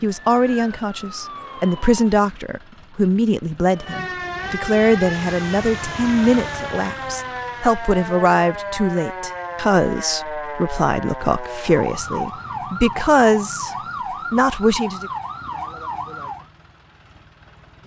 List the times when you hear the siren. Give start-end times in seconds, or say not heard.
0.0-2.2, 3.6-16.5.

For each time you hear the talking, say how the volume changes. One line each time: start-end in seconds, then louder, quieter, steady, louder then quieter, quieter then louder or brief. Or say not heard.
0.0-13.7 steady
14.3-15.1 brief.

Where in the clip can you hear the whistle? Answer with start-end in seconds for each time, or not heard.
not heard.